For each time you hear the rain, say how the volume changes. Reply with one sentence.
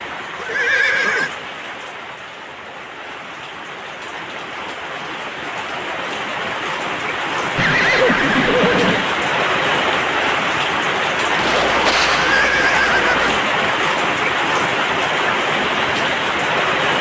You can hear the rain from 0.0 to 16.9 s, getting louder.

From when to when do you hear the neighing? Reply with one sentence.
The neighing can be heard from 0.3 to 1.3 s, from 7.5 to 9.1 s and from 11.3 to 13.4 s.